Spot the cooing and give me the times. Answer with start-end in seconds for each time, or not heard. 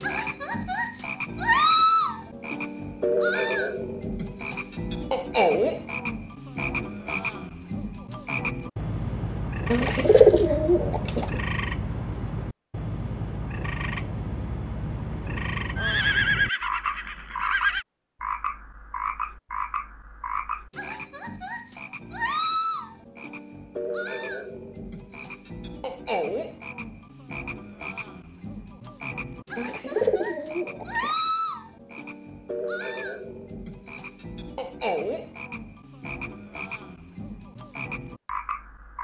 9.7-11.3, 29.6-31.1.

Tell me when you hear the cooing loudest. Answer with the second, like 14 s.
10 s.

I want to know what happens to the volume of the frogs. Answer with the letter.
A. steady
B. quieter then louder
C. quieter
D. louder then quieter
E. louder
C.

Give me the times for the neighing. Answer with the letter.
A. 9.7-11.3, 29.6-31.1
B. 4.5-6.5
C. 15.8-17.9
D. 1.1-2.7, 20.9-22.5
C.